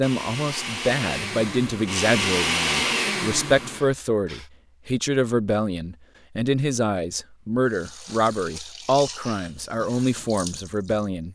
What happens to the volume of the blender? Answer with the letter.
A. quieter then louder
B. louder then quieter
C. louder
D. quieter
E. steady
B.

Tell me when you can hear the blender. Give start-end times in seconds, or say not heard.
0.0-4.5.